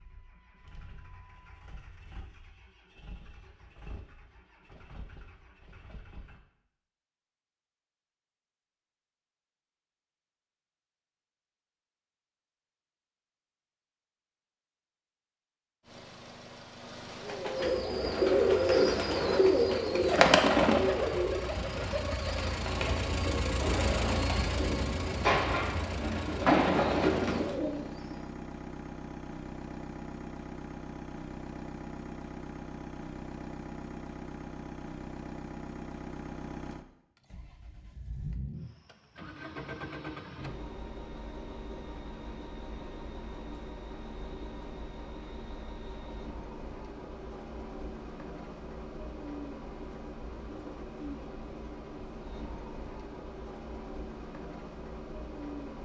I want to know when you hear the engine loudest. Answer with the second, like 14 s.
24 s.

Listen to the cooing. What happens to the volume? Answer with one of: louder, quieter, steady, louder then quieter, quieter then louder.
quieter then louder.